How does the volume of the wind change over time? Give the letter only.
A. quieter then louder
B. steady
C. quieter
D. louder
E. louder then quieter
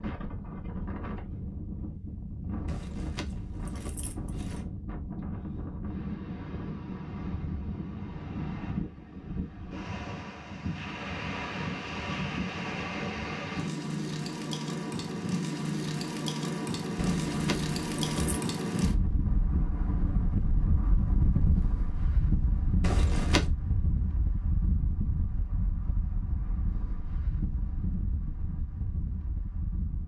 E.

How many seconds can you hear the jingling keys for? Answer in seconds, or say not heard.
4 s.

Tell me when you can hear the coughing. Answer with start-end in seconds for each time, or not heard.
not heard.